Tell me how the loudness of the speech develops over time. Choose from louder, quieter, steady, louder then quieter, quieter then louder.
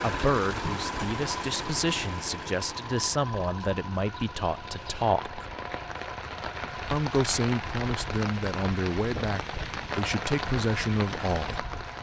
steady.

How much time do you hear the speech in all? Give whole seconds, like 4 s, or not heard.
10 s.